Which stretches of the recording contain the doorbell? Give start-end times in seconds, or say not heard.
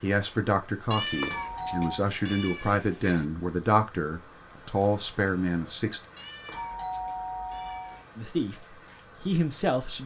1.3-2.0, 6.5-8.0.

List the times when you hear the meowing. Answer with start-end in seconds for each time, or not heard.
0.9-3.2, 6.2-8.2.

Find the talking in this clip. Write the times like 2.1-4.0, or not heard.
0.0-6.0, 8.2-10.0.